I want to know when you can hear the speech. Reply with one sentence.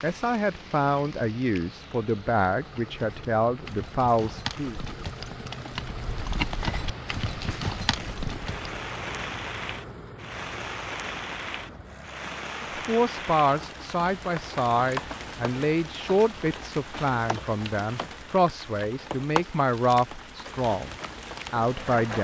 The speech can be heard from 0.0 to 4.8 s and from 12.8 to 22.2 s.